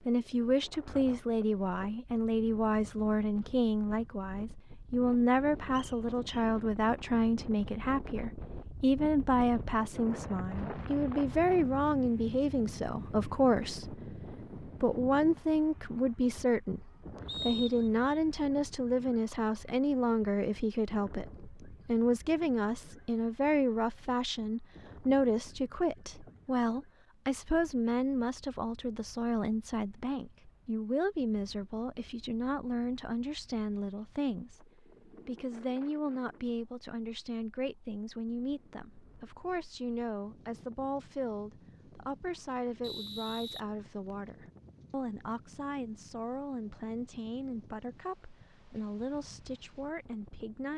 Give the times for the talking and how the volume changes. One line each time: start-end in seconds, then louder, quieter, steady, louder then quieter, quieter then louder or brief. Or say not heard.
0.1-50.7 quieter.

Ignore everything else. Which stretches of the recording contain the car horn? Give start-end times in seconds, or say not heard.
not heard.